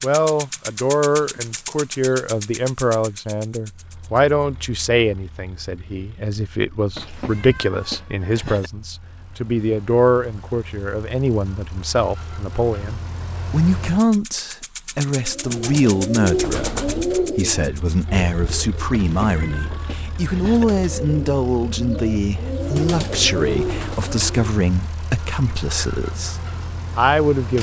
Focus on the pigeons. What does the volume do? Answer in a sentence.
The loudness of the pigeons goes down, then up.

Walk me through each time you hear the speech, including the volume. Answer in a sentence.
You can hear the speech from 0.0 to 27.5 s, at a steady volume.